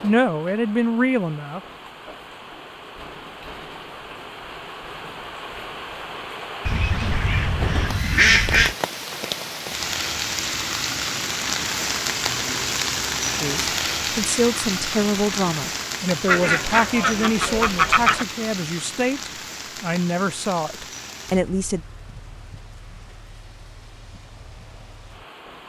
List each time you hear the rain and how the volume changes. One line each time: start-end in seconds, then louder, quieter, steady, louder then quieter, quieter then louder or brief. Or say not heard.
0.0-25.6 louder then quieter.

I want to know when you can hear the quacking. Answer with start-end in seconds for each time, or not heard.
6.7-8.8, 16.2-18.2.